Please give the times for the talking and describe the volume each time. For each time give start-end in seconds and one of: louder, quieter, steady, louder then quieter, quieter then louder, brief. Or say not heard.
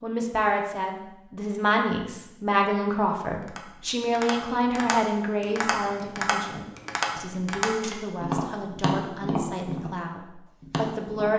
0.0-11.3 quieter.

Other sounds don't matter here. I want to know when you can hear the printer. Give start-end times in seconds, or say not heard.
not heard.